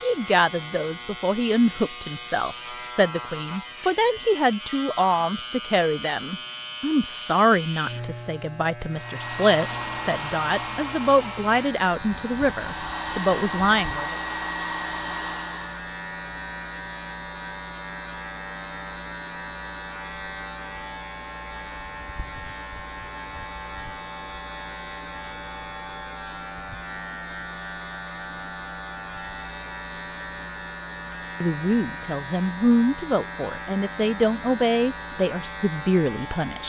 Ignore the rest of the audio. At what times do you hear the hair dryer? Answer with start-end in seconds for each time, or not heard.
8.9-15.8.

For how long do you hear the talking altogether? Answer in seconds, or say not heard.
19 s.